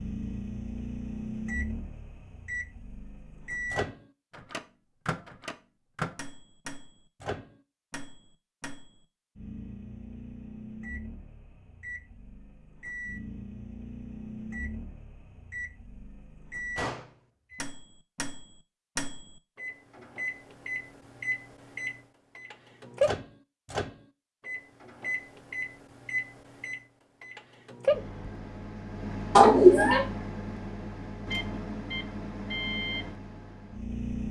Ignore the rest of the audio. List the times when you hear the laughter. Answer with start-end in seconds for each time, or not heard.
29.4-30.0.